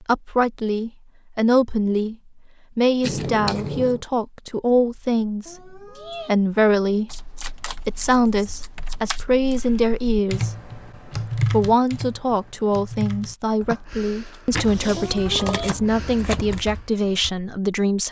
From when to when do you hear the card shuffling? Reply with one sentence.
You can hear the card shuffling from 3.0 to 4.0 s, from 7.1 to 9.2 s and from 14.5 to 16.6 s.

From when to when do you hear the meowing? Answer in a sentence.
You can hear the meowing from 5.5 to 6.3 s and from 14.9 to 15.8 s.